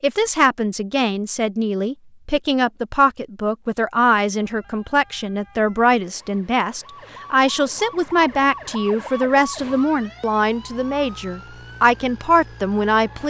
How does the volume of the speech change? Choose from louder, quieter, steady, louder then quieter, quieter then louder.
steady.